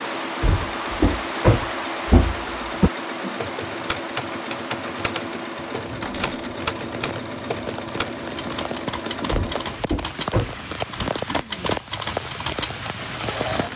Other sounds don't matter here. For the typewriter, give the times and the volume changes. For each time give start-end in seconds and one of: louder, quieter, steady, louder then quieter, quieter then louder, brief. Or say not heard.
3.4-12.9 steady.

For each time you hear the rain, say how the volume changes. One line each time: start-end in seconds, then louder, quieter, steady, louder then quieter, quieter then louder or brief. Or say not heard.
0.0-13.7 quieter then louder.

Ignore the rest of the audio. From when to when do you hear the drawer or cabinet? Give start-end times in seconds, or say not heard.
0.4-2.9, 6.0-6.4, 9.3-11.1.